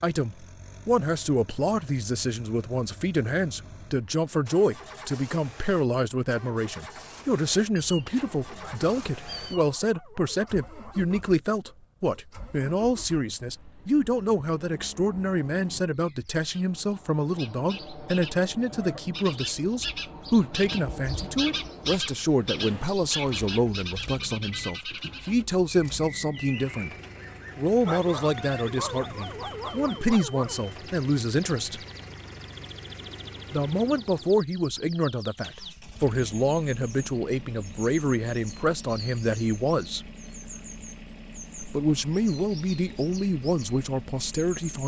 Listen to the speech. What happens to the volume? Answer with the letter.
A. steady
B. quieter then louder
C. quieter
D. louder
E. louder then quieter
A.